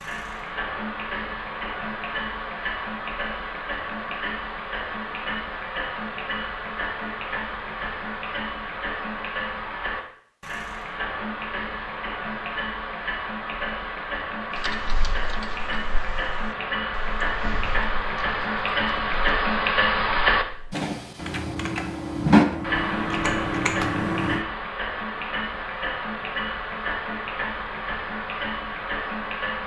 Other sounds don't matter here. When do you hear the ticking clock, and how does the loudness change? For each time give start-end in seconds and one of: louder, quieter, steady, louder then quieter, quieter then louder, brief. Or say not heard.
0.0-29.6 louder then quieter.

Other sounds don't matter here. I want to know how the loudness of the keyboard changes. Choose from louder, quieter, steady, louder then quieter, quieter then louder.
quieter then louder.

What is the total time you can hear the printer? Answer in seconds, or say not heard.
not heard.